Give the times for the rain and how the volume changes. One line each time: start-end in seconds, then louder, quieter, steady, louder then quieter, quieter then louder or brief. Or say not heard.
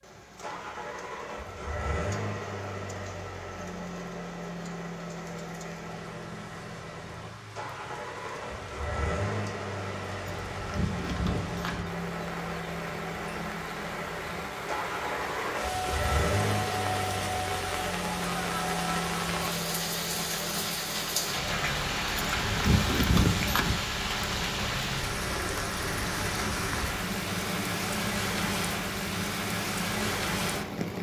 0.0-30.9 louder.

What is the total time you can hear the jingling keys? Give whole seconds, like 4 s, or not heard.
3 s.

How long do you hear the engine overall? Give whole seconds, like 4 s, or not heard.
31 s.